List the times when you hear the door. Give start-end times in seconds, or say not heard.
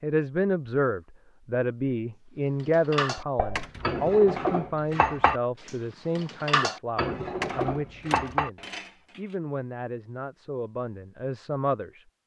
3.5-4.0, 7.4-8.4.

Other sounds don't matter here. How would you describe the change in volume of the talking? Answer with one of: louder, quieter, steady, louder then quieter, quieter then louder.
quieter.